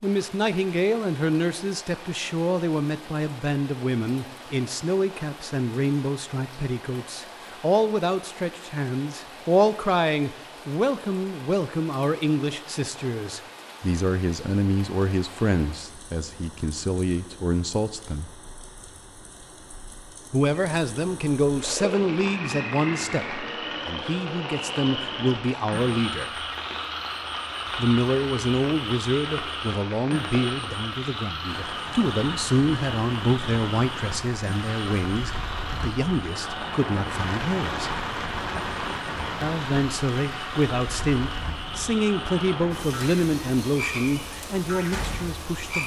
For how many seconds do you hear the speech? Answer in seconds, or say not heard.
41 s.